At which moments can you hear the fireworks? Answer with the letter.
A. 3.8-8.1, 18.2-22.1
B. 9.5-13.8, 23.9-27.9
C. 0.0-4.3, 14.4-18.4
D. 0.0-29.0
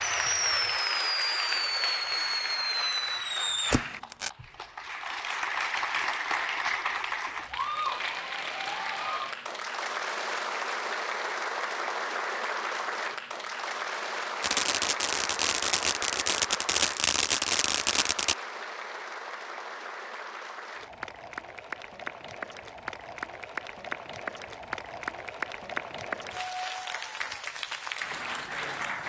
C.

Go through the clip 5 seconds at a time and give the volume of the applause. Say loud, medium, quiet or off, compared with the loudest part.
loud, loud, loud, medium, medium, loud.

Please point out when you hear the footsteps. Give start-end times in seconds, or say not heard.
not heard.